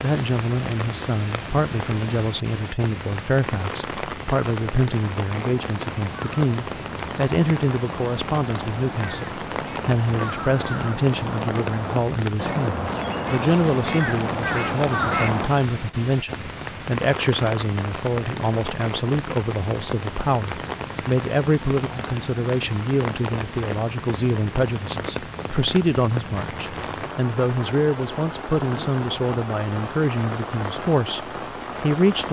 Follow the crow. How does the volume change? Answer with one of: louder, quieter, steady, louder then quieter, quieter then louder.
louder.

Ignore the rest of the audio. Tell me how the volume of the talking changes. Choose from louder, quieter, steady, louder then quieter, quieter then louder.
steady.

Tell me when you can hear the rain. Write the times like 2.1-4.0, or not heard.
0.0-32.2.